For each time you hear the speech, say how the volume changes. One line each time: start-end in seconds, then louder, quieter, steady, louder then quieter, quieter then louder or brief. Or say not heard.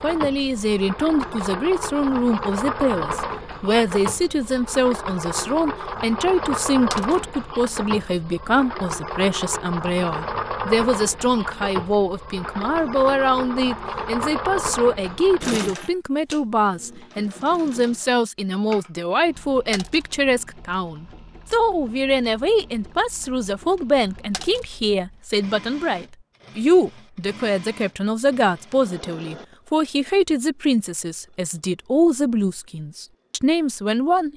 0.0-34.3 steady.